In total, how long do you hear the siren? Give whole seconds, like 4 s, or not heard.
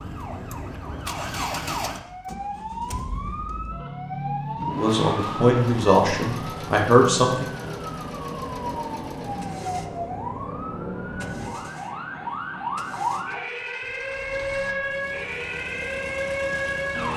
17 s.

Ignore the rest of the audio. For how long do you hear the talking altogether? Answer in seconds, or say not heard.
3 s.